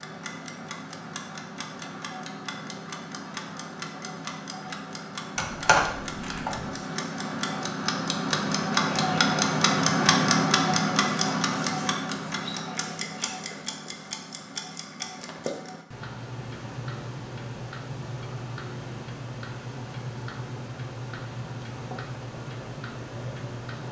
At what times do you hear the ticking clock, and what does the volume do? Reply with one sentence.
You can hear the ticking clock from 0.0 to 23.8 s, getting louder then quieter.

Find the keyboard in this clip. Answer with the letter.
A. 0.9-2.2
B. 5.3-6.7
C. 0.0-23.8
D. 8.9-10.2
B.